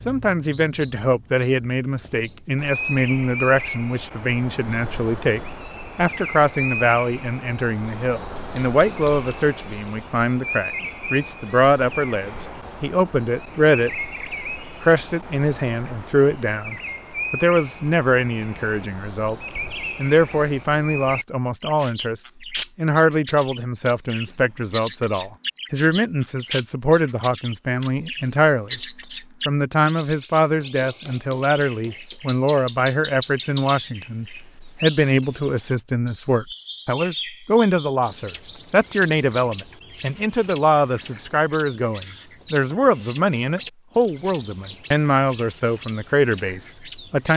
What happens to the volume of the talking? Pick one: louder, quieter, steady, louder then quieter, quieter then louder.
steady.